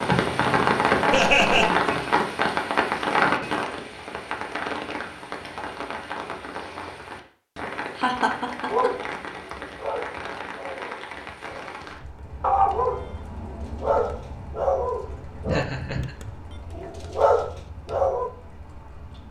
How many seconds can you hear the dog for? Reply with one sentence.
The dog can be heard for 10 seconds in total.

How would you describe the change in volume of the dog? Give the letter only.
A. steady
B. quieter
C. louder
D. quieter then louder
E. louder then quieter
C.